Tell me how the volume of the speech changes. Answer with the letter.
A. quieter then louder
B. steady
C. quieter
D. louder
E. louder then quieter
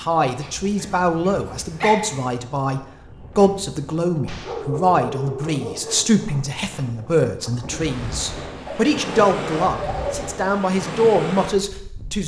B.